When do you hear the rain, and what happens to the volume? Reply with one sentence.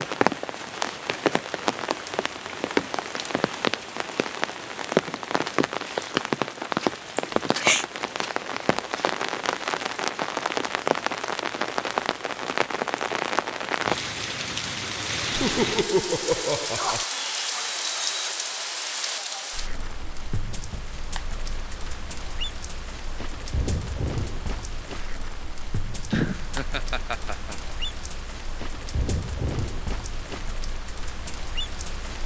The rain can be heard from 0.0 to 32.2 s, getting quieter.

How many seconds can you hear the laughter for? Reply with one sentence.
The laughter can be heard for 4 seconds in total.